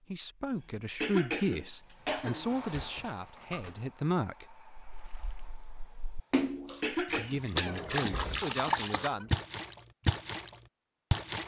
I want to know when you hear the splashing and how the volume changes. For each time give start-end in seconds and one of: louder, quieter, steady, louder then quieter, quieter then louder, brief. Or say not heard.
4.8-11.4 louder.